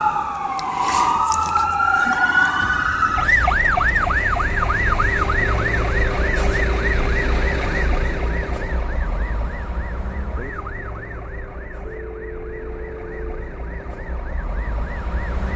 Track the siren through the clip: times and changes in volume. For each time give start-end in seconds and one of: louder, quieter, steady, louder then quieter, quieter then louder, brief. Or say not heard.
0.0-15.5 quieter.